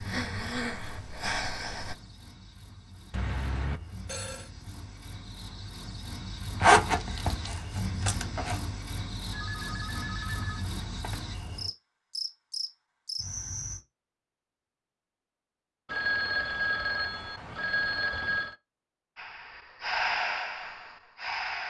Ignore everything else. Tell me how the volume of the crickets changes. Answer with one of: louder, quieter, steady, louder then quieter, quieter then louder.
louder.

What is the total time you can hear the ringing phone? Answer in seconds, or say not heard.
6 s.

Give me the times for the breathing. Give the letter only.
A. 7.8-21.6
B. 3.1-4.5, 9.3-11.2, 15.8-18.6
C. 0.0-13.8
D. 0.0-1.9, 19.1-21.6
D.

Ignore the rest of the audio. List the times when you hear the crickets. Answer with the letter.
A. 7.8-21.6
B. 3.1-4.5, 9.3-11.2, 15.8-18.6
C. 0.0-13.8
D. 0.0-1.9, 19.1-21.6
C.